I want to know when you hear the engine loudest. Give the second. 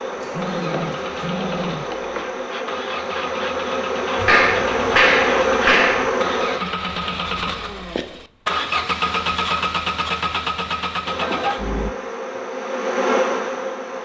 9 s.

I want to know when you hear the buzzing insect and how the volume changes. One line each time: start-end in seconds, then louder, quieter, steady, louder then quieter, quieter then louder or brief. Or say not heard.
0.0-6.6 louder
11.1-14.0 brief.